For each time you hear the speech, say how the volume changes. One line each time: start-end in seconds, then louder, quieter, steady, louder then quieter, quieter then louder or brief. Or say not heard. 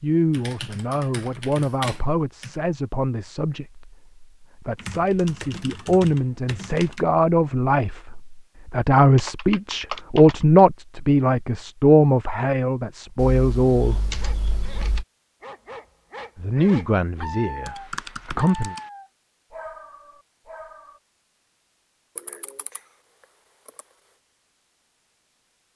0.0-14.2 louder
16.4-18.8 brief.